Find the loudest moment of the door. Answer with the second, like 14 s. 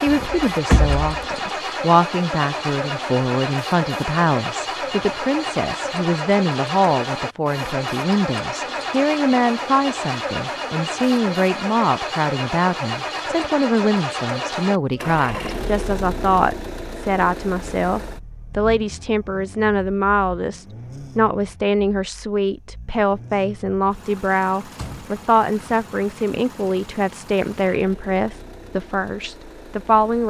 1 s.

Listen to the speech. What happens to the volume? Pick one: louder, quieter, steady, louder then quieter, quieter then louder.
steady.